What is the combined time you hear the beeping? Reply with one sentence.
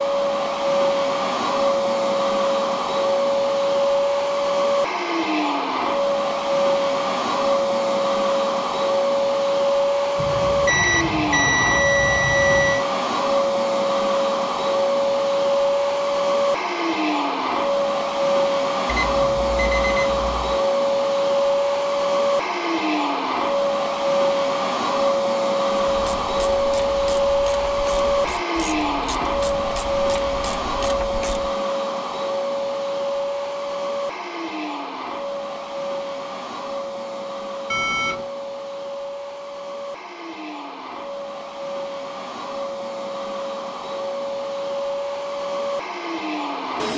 You can hear the beeping for 5 seconds altogether.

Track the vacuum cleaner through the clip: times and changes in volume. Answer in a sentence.
You can hear the vacuum cleaner from 0.0 to 46.9 s, getting quieter.